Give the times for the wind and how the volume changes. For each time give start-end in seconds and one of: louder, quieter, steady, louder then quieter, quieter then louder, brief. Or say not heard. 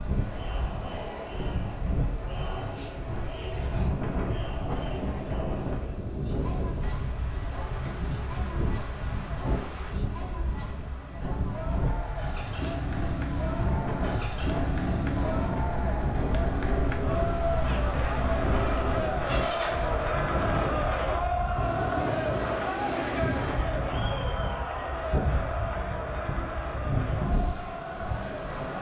0.0-28.7 steady.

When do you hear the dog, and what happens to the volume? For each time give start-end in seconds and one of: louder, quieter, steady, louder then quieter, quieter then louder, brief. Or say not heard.
not heard.